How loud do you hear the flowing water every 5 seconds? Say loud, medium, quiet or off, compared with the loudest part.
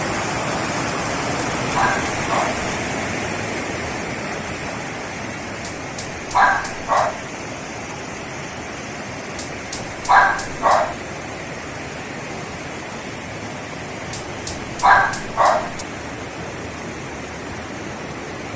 loud, medium, medium, medium.